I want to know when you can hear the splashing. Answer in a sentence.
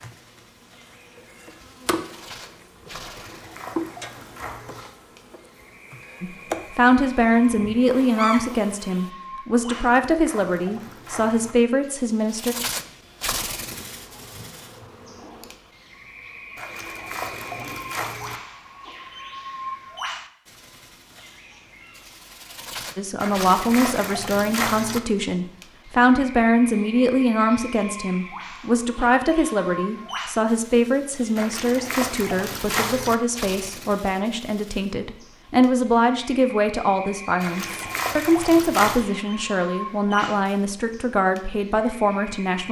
The splashing can be heard from 3.0 to 4.8 s, from 9.7 to 11.6 s, from 16.6 to 18.4 s, from 23.2 to 25.0 s, from 31.4 to 33.1 s and from 37.4 to 39.0 s.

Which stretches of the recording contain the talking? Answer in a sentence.
You can hear the talking from 6.2 to 12.6 s and from 22.9 to 42.6 s.